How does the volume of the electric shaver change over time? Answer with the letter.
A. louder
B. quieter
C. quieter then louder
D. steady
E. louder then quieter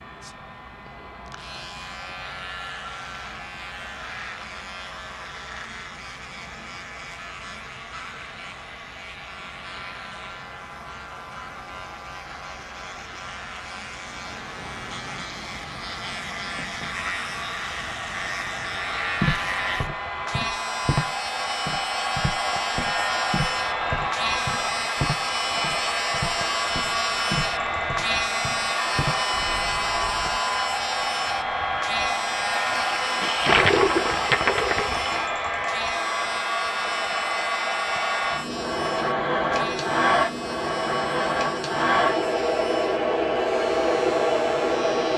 E.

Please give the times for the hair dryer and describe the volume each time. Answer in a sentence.
The hair dryer can be heard from 0.0 to 45.1 s, getting louder.